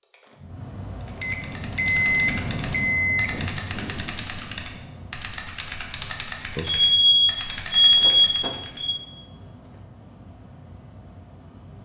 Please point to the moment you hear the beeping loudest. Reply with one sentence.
The loudest moment of the beeping is at 7 seconds.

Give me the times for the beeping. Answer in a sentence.
You can hear the beeping from 1.2 to 3.3 s and from 6.5 to 9.0 s.